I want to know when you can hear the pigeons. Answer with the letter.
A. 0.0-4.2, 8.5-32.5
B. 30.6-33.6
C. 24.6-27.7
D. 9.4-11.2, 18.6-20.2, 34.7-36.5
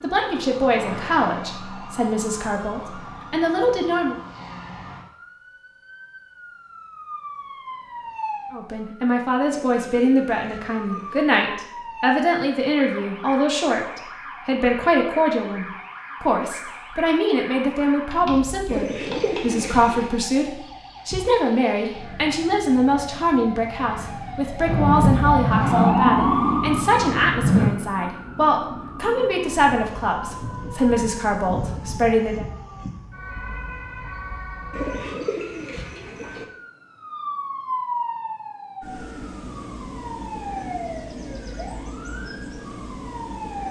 D.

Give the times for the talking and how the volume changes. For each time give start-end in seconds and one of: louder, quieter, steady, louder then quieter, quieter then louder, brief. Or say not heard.
0.0-4.2 quieter then louder
8.5-32.5 steady.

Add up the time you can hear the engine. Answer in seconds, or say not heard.
3 s.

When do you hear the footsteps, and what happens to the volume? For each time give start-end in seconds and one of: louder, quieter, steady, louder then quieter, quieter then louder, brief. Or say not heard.
not heard.